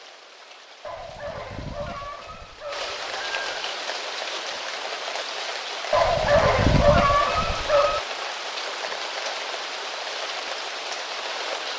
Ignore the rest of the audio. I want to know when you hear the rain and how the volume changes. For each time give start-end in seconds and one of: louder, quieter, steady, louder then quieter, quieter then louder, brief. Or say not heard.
0.0-11.7 louder.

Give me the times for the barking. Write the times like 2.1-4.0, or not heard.
0.8-3.6, 5.9-8.0.